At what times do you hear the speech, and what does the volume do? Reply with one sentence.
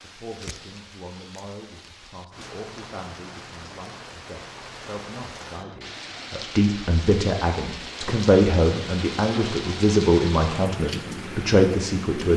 You can hear the speech from 0.0 to 12.3 s, getting louder.